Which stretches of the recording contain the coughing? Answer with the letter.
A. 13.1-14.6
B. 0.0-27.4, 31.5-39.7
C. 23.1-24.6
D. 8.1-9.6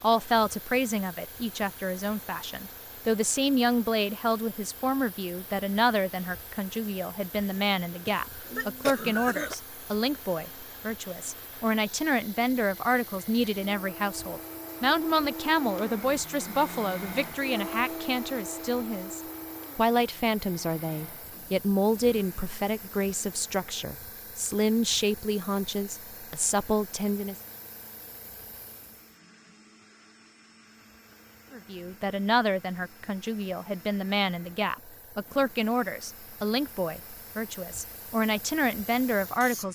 D.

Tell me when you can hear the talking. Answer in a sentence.
You can hear the talking from 0.0 to 27.4 s and from 31.5 to 39.7 s.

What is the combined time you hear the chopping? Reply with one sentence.
You can't hear the chopping here.